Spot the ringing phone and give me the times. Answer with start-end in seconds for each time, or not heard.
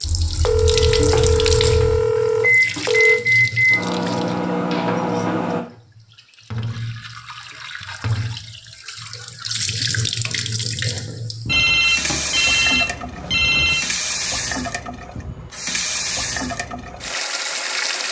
0.5-3.2, 11.4-13.8.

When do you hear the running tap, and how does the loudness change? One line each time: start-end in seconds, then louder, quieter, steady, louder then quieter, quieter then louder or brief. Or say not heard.
0.0-18.0 quieter then louder.